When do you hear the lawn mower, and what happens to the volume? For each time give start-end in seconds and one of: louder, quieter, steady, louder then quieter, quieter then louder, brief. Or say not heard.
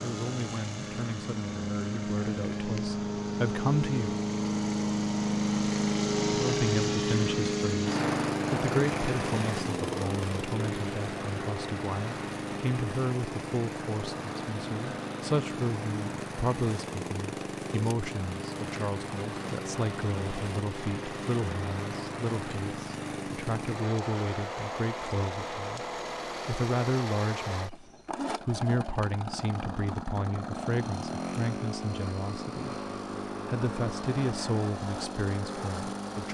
0.0-36.2 quieter.